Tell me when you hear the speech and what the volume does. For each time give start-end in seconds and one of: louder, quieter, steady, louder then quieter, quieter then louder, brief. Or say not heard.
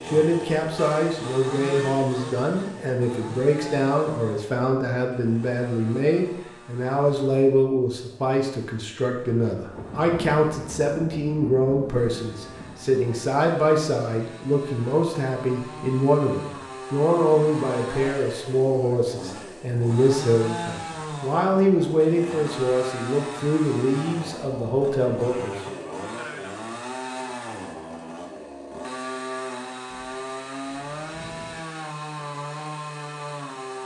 0.1-25.8 steady.